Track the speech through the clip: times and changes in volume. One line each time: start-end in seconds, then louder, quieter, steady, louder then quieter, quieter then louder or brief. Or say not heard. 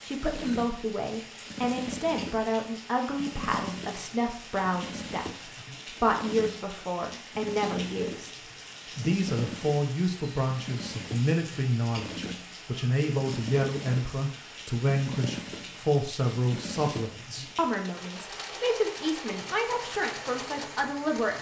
0.1-21.3 steady.